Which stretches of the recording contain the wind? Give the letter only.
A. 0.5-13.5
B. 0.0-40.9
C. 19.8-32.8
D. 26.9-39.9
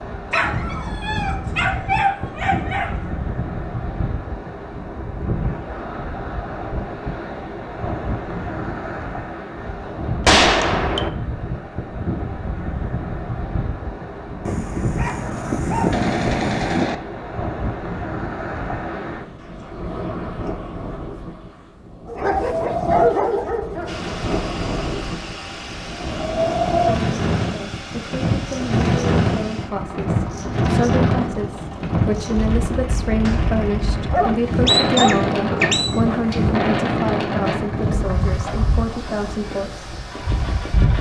B.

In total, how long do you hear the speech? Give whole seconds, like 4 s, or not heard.
13 s.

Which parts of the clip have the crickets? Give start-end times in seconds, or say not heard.
not heard.